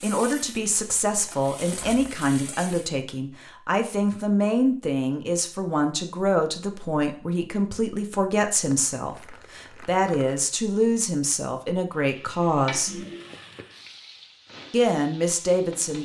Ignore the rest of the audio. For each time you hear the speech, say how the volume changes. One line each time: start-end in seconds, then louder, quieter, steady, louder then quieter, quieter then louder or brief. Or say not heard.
0.0-13.0 steady
14.7-16.0 brief.